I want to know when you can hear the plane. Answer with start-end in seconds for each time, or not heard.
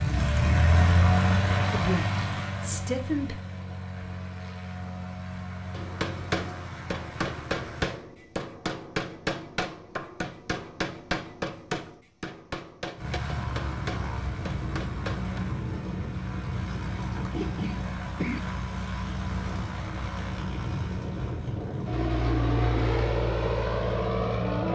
0.0-8.0, 12.9-24.7.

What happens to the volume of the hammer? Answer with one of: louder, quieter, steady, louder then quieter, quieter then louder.
quieter.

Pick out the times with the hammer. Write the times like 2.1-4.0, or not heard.
5.7-15.4.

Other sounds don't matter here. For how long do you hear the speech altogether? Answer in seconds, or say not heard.
2 s.